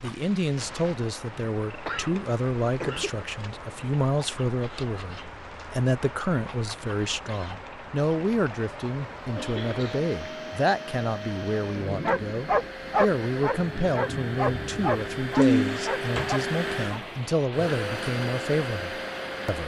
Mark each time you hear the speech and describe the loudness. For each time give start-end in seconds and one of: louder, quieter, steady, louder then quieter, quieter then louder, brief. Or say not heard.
0.0-19.6 steady.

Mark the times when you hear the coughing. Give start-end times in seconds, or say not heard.
1.7-3.2, 9.3-10.1, 15.3-16.4.